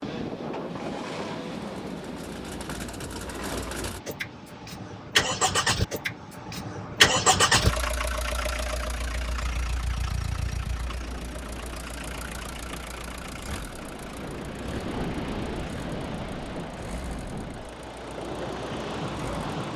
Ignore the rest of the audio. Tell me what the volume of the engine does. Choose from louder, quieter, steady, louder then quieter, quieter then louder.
louder then quieter.